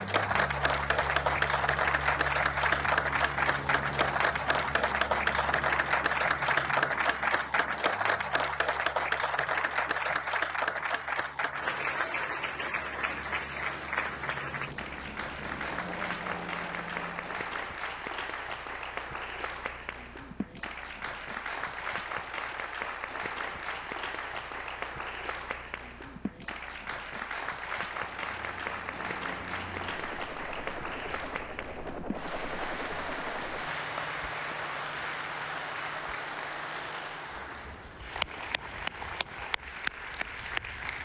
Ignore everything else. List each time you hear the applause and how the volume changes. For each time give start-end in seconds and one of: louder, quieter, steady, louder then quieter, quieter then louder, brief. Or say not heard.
0.0-41.0 quieter.